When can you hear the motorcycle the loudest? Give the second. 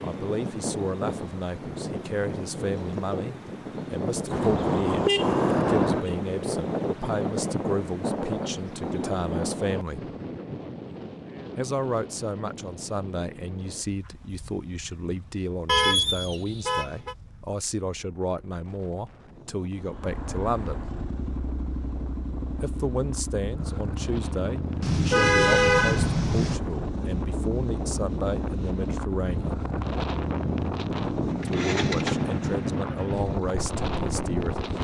32 s.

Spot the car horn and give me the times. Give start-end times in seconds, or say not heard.
4.3-6.2, 15.7-17.1, 24.8-26.6.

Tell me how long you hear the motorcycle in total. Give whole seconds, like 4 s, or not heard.
15 s.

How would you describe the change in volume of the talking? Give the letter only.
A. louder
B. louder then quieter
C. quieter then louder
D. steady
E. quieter
D.